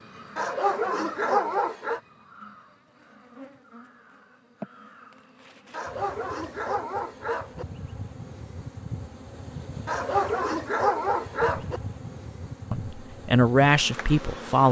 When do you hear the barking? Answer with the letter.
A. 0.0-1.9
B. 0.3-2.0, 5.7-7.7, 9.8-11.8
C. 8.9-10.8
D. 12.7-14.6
B.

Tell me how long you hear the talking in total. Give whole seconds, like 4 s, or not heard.
2 s.